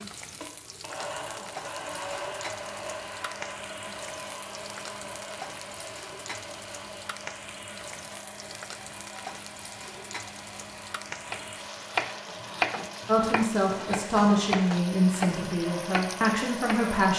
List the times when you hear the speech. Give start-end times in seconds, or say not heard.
13.1-17.1.